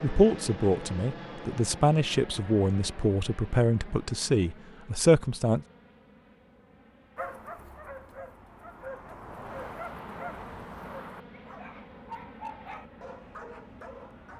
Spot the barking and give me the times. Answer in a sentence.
The barking can be heard from 7.2 to 14.3 s.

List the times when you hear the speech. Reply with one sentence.
You can hear the speech from 0.0 to 5.6 s.